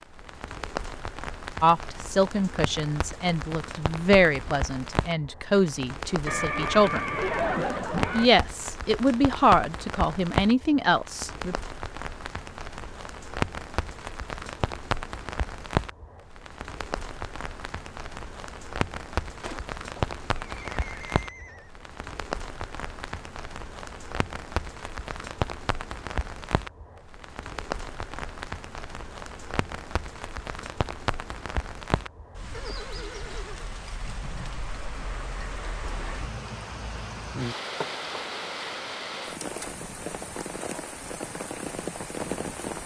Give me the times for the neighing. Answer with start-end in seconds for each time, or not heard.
6.2-8.3, 19.4-21.7, 32.5-33.8.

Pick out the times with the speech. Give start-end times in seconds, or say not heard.
1.6-7.2, 8.1-11.6.